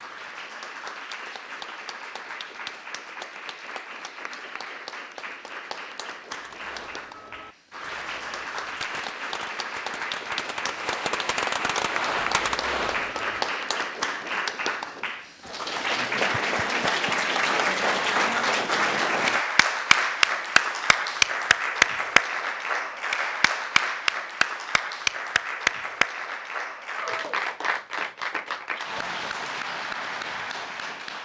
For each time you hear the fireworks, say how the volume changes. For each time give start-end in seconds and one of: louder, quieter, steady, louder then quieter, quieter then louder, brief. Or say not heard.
6.3-13.5 louder.